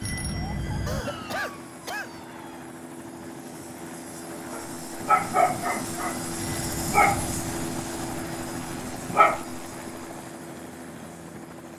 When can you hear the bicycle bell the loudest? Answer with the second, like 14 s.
1 s.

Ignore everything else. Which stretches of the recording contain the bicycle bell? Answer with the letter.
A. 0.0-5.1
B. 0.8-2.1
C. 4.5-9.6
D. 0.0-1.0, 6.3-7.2
D.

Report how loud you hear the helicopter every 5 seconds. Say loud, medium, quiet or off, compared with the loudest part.
medium, loud, medium.